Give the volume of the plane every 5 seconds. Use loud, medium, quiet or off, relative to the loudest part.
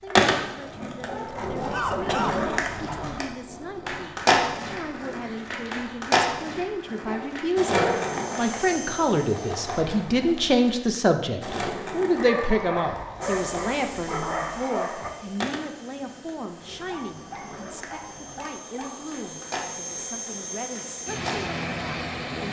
off, medium, medium, medium, loud.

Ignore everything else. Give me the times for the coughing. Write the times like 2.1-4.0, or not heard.
1.7-2.4.